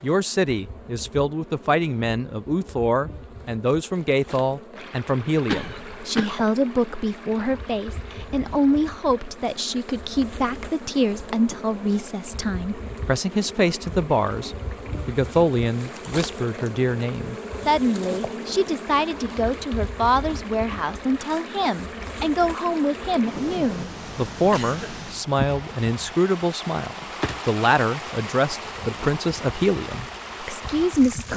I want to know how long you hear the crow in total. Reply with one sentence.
The crow can't be heard in this clip.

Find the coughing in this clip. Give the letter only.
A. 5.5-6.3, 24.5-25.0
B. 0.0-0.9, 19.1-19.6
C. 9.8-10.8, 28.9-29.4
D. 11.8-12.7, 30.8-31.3
A.